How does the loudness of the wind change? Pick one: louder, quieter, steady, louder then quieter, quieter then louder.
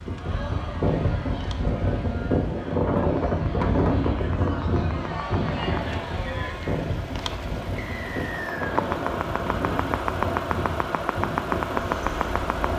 quieter.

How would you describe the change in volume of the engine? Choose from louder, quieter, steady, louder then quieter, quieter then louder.
louder.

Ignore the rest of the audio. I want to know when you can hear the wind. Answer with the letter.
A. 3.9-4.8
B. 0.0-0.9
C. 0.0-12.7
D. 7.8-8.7
C.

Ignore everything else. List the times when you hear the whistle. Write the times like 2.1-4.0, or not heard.
7.8-8.7.